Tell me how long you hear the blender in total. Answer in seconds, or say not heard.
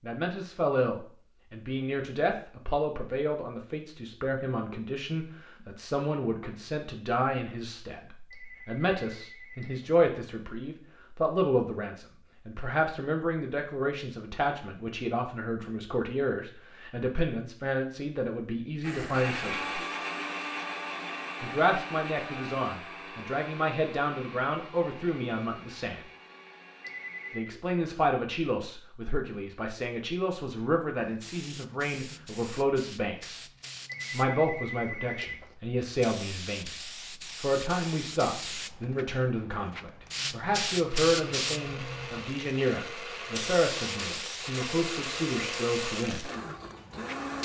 15 s.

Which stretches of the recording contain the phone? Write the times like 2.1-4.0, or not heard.
8.3-9.9, 26.8-27.5, 33.9-35.5.